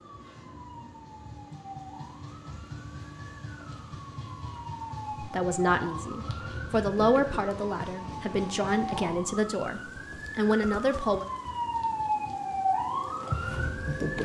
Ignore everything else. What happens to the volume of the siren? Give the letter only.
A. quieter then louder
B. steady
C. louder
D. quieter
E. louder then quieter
C.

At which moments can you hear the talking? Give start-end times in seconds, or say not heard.
5.2-11.2.